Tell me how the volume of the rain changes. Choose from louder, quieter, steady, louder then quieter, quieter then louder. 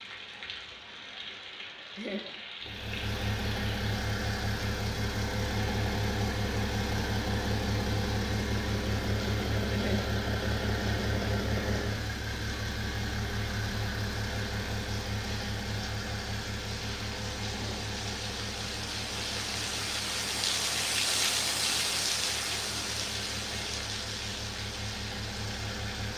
louder.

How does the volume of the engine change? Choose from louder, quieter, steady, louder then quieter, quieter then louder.
quieter.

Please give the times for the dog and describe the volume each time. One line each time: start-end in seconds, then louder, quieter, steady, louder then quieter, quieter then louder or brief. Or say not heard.
not heard.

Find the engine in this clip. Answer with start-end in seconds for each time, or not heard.
2.6-26.1.